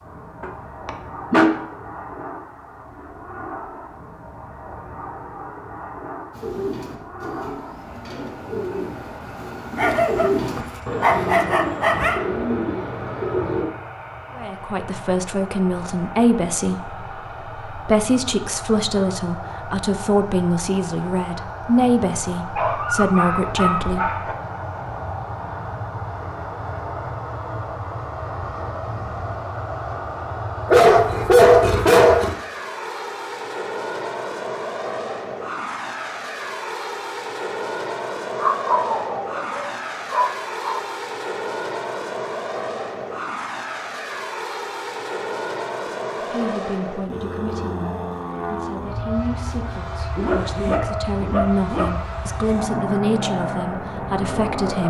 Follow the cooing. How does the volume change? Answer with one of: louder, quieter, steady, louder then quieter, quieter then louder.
louder.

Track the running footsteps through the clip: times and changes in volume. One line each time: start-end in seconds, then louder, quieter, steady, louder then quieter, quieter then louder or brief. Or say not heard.
not heard.